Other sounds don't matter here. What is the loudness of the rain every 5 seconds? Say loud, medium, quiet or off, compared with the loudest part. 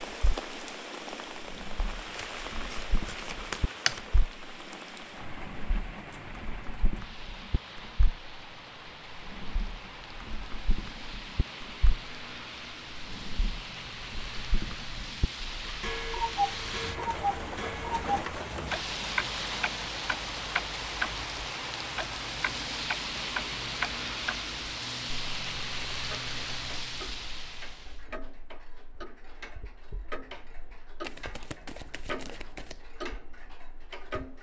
medium, medium, medium, loud, loud, loud, off.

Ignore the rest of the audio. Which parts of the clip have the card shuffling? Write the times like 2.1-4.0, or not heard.
2.1-4.0, 31.0-32.9.